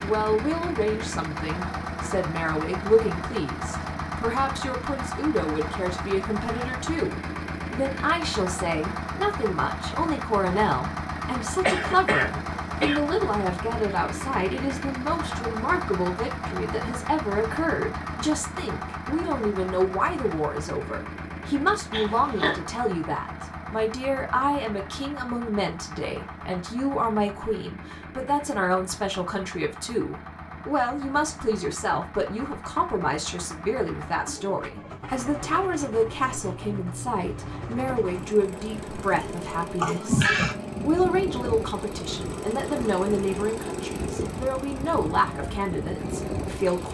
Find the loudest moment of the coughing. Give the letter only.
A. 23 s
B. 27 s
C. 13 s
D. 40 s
D.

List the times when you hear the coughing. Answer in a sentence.
You can hear the coughing from 11.6 to 13.1 s, from 21.9 to 22.6 s and from 39.8 to 40.5 s.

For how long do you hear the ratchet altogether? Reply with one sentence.
You can't hear the ratchet here.